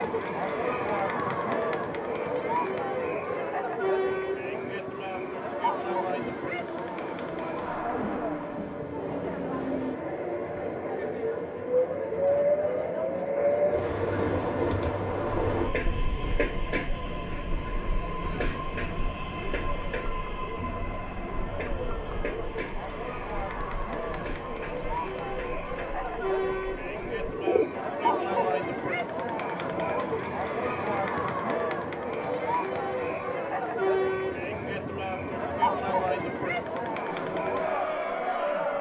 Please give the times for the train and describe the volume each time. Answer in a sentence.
The train can be heard from 0.0 to 38.7 s, getting louder then quieter.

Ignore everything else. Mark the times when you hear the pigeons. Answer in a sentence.
You can hear the pigeons from 27.1 to 28.6 s.